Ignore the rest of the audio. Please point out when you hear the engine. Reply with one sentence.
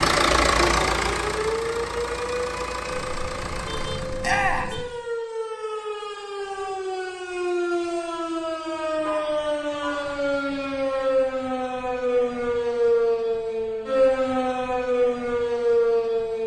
You can hear the engine from 0.0 to 4.3 s.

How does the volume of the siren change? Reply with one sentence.
The volume of the siren goes up.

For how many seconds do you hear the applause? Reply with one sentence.
You can't hear the applause here.